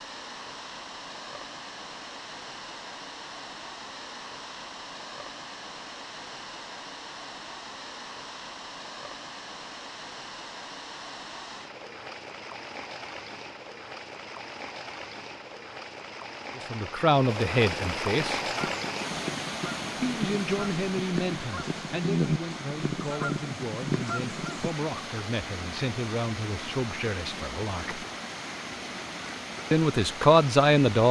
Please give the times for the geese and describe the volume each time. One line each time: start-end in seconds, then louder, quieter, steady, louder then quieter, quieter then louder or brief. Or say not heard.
18.4-24.7 louder.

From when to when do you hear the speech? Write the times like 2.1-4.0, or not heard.
16.6-18.4, 19.9-28.1, 29.7-31.0.